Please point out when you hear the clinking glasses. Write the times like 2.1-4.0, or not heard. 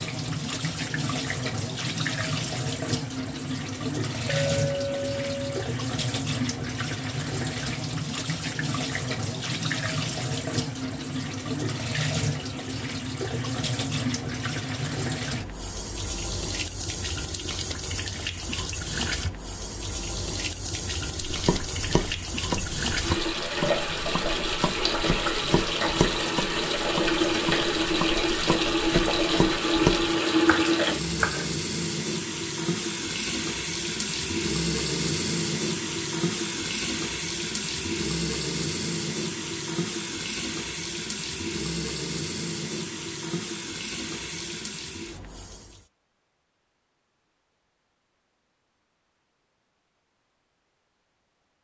4.2-5.7.